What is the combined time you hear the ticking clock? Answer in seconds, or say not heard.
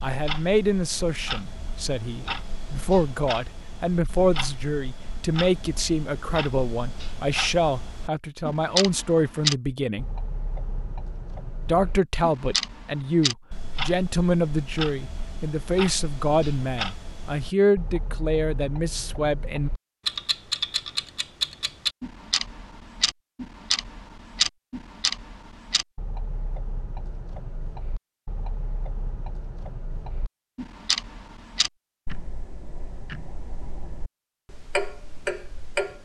36 s.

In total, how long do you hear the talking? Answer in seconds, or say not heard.
18 s.